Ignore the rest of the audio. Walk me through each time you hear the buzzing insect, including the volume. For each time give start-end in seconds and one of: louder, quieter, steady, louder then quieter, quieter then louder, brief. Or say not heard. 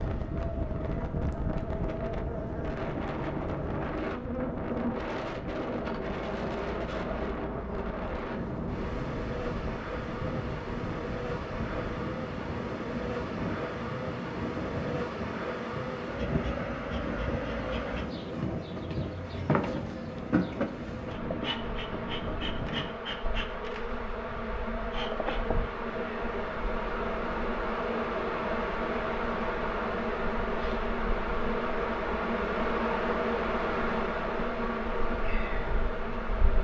0.0-36.5 louder.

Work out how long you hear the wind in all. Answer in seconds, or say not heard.
23 s.